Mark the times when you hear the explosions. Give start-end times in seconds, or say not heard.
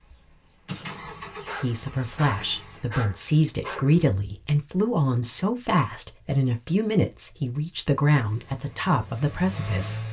0.7-1.5.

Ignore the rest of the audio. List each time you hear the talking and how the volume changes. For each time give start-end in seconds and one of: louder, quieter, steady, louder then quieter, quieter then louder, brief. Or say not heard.
1.6-10.0 steady.